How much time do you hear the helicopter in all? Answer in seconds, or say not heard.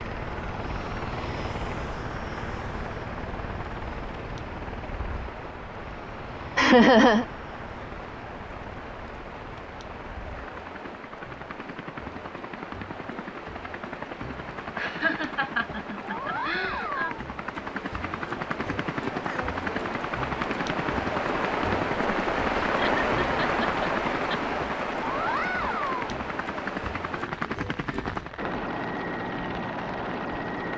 31 s.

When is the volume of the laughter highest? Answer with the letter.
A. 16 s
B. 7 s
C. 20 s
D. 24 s
B.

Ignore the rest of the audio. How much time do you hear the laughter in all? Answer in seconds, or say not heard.
5 s.